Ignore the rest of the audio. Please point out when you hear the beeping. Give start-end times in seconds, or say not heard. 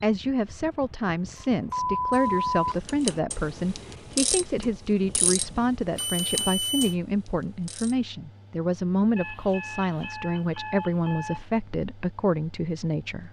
1.4-2.8, 6.0-7.0, 9.2-11.4.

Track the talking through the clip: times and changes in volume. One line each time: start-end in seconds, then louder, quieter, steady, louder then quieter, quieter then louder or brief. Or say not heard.
0.0-13.2 steady.